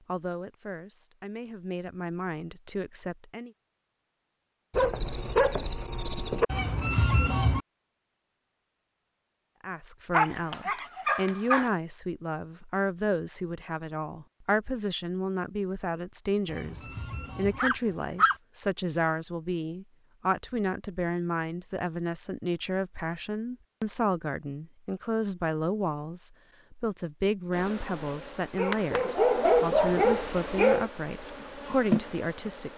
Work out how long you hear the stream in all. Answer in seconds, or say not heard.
not heard.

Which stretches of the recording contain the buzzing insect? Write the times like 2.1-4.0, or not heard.
27.5-32.7.